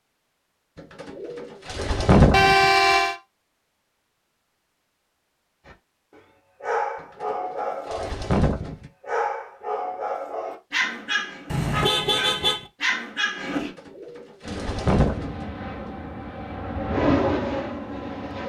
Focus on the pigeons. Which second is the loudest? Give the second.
2 s.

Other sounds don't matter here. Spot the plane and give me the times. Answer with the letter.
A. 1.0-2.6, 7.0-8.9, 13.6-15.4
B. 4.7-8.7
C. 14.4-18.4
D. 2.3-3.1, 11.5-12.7
C.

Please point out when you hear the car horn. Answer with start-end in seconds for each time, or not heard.
2.3-3.1, 11.5-12.7.